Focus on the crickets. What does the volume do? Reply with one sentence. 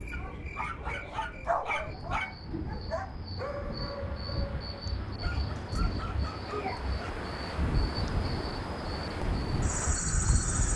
The volume of the crickets goes up.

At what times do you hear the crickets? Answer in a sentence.
The crickets can be heard from 0.0 to 10.7 s.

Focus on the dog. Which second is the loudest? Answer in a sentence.
The volume of the dog peaks at 2 seconds.